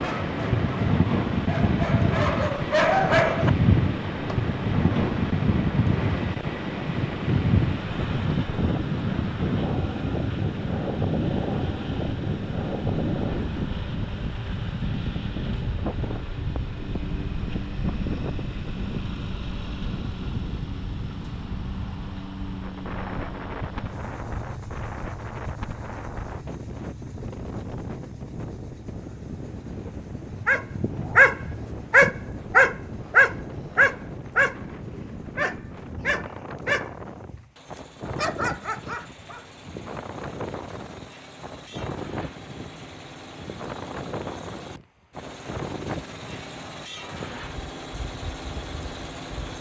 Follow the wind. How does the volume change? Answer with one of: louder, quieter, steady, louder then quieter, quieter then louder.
quieter.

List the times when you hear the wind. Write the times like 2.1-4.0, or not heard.
0.0-49.5.